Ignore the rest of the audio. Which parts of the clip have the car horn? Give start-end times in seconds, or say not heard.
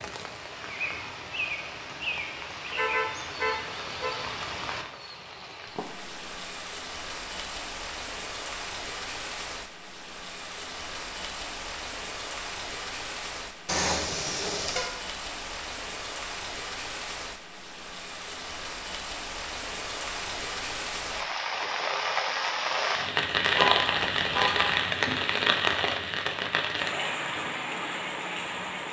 2.7-4.2, 13.7-14.9, 23.6-24.9.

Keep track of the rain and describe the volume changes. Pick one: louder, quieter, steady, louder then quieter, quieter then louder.
louder.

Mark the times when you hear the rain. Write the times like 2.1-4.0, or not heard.
0.0-28.8.